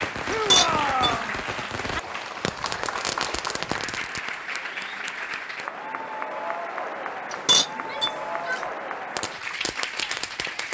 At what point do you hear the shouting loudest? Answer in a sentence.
The loudest moment of the shouting is at 1 second.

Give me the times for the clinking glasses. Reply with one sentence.
You can hear the clinking glasses from 0.3 to 1.1 s and from 7.3 to 8.6 s.